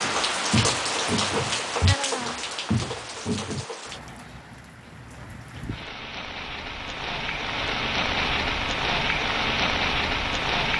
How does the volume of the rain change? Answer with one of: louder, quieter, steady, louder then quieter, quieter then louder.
quieter then louder.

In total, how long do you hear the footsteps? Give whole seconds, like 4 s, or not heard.
4 s.